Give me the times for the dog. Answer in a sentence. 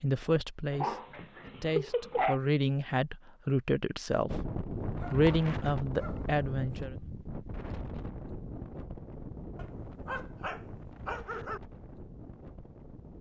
The dog can be heard from 0.7 to 2.4 s, from 5.0 to 6.8 s and from 9.6 to 11.6 s.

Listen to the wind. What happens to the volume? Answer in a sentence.
The loudness of the wind goes down.